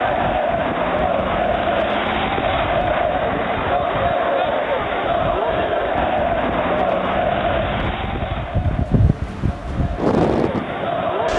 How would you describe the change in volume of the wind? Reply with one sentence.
The loudness of the wind goes up.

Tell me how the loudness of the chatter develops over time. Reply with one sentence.
The loudness of the chatter goes down.